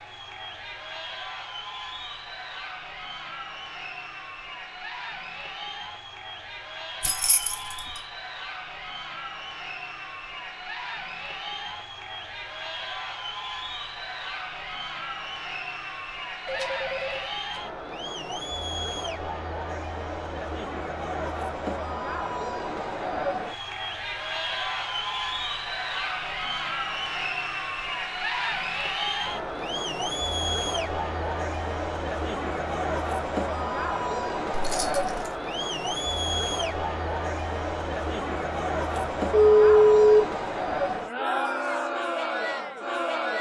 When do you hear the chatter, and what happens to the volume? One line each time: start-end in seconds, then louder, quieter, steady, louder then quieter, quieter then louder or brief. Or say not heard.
0.0-43.3 louder.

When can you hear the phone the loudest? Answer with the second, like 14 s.
40 s.